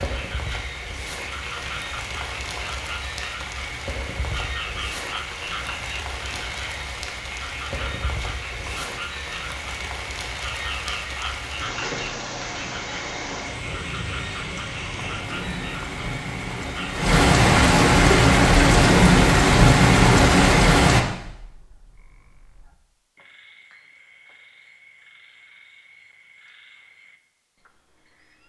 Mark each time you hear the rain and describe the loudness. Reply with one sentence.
You can hear the rain from 0.0 to 21.1 s, getting louder.